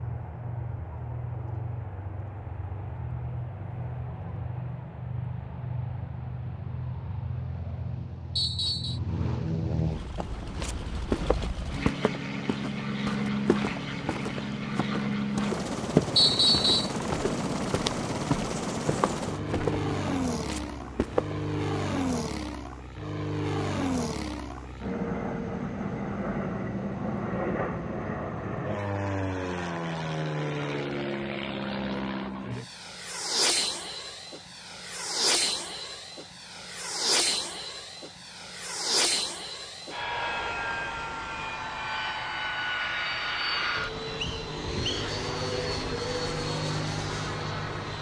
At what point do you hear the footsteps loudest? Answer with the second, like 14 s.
16 s.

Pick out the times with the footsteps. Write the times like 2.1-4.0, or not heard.
10.2-21.4.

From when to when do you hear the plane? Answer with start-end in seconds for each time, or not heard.
0.0-47.9.